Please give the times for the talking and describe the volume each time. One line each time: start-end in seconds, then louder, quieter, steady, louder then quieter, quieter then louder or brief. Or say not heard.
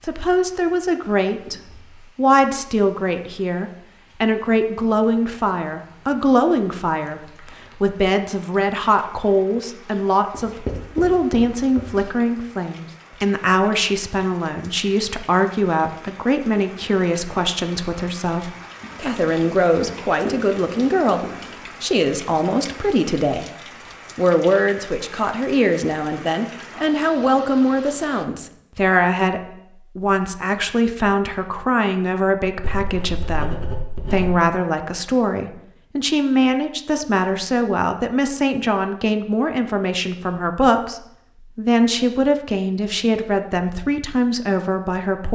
0.0-23.5 steady
24.1-45.3 steady.